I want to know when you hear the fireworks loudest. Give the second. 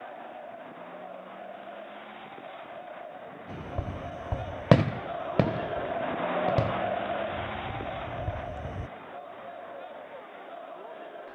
5 s.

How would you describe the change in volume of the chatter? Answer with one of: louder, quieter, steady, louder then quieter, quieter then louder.
louder then quieter.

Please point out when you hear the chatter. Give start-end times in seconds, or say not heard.
0.0-11.3.